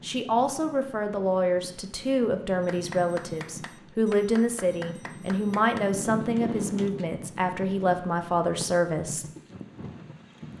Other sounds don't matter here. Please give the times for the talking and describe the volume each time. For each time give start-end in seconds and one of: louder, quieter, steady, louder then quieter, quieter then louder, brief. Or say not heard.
0.0-9.2 steady.